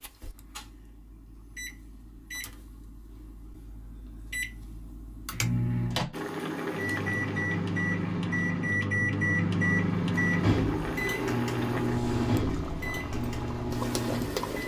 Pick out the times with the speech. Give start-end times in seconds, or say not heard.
not heard.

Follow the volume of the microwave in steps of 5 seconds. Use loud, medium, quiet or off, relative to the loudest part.
quiet, loud, loud.